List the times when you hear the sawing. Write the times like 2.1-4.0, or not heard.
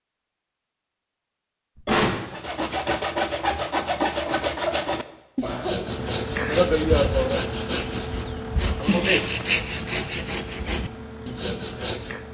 2.3-12.2.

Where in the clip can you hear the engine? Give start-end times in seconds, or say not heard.
5.8-12.2.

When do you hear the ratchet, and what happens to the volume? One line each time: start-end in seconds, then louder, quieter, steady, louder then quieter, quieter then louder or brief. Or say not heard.
not heard.